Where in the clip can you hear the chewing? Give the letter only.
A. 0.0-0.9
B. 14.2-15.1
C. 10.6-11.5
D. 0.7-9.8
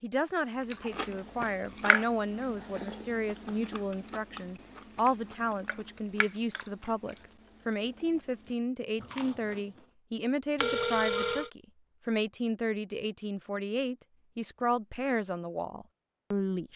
D.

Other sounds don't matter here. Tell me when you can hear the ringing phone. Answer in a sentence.
You can hear the ringing phone from 10.6 to 11.5 s.